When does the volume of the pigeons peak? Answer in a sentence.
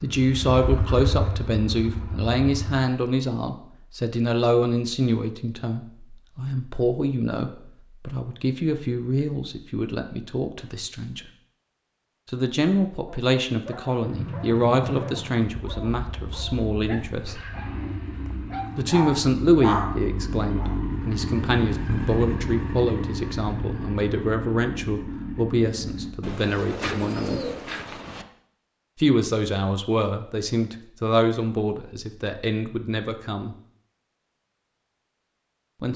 The volume of the pigeons peaks at 27 seconds.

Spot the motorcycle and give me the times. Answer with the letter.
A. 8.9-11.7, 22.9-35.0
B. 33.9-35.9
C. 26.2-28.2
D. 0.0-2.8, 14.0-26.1
D.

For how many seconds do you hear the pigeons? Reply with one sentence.
You can hear the pigeons for 2 seconds altogether.